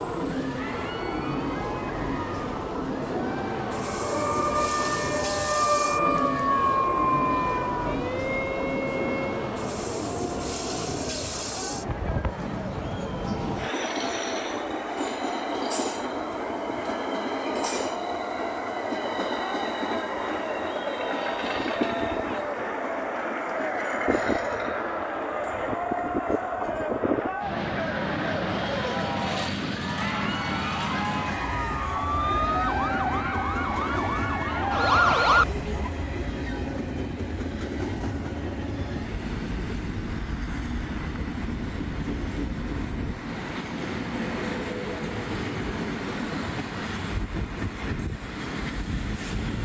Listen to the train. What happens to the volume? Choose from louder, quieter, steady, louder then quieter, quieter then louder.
steady.